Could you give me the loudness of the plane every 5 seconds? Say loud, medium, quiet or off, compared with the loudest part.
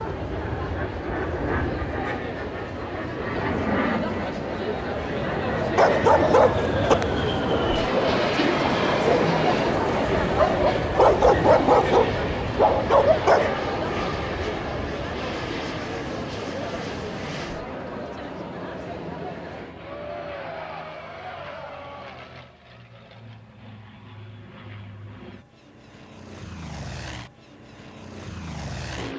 loud, loud, loud, medium, quiet, medium.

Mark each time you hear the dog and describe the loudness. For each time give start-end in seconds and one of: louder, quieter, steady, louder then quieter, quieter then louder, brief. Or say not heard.
5.6-13.6 quieter then louder.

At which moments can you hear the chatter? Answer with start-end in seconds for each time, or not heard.
0.0-22.6.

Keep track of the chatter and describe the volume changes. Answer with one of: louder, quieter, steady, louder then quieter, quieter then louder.
louder then quieter.